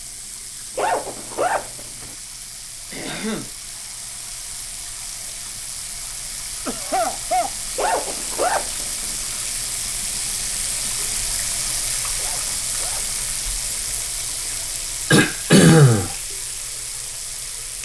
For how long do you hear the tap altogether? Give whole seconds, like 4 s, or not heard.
18 s.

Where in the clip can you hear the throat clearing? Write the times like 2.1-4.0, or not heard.
2.9-3.5, 6.7-7.5, 15.1-16.1.